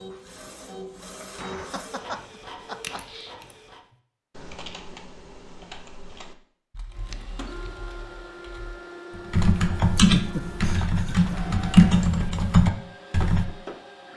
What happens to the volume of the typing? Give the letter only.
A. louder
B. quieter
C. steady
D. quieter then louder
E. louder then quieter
D.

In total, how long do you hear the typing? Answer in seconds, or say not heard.
11 s.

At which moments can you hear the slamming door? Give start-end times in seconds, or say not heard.
1.2-1.9.